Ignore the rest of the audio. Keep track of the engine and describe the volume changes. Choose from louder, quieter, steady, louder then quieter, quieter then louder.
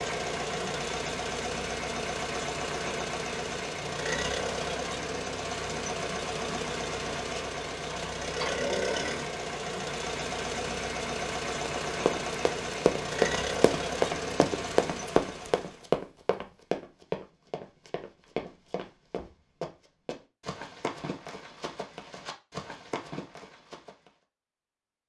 steady.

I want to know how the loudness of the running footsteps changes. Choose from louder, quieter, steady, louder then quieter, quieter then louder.
quieter.